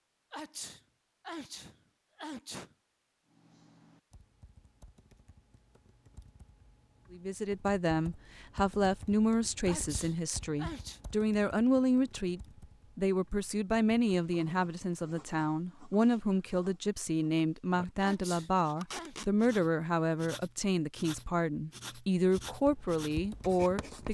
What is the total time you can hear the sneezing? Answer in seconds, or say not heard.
5 s.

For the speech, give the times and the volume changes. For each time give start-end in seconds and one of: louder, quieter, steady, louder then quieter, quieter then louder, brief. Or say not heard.
7.1-24.0 steady.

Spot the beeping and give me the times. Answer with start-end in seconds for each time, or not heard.
not heard.